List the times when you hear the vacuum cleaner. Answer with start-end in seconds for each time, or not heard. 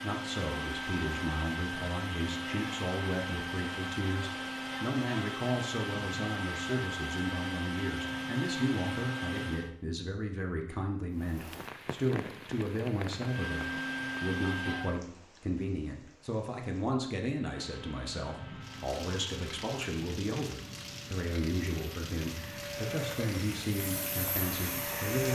0.0-9.7, 13.2-15.0, 17.4-25.3.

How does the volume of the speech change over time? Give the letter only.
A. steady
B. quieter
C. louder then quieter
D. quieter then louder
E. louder
A.